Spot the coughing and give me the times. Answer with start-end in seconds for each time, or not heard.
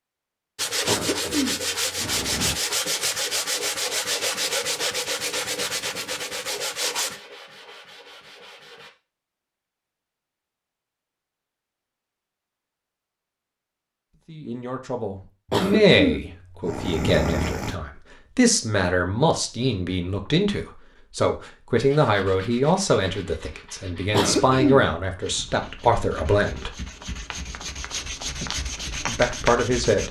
0.8-2.6, 15.5-17.8, 24.1-25.0.